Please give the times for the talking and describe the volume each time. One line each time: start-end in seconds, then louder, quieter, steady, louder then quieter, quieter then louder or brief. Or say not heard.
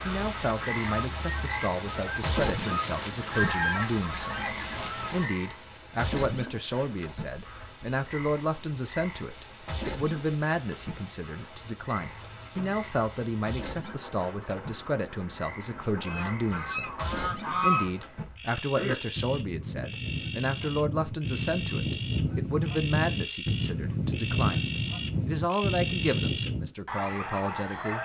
0.0-28.0 steady.